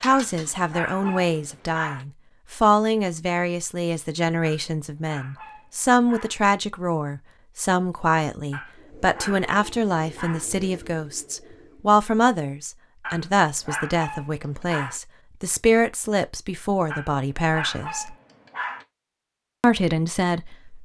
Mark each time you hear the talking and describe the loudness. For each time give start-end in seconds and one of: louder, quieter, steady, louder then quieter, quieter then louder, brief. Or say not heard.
0.0-18.1 steady
19.6-20.8 brief.